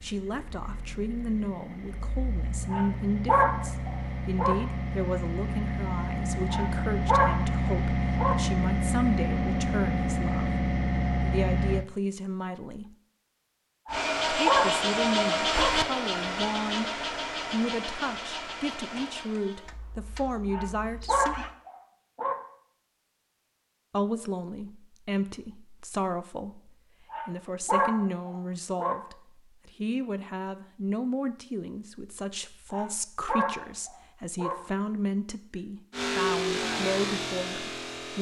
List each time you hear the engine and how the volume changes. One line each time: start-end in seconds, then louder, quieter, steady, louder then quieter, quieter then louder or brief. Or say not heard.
0.0-11.8 louder
13.9-21.6 quieter
35.9-38.1 brief.